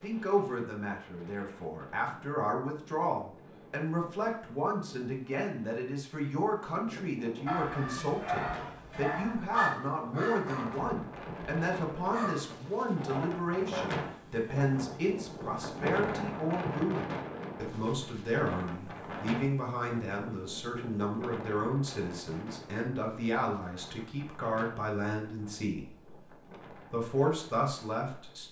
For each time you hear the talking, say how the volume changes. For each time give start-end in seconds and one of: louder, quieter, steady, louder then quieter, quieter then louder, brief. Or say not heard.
0.0-26.1 steady
26.9-28.4 brief.